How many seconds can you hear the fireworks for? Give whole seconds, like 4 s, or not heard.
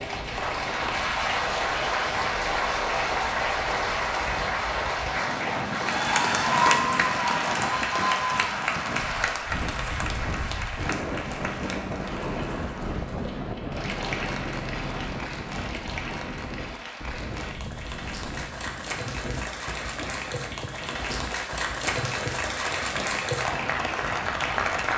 not heard.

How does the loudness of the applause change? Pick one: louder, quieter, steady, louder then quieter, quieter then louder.
quieter then louder.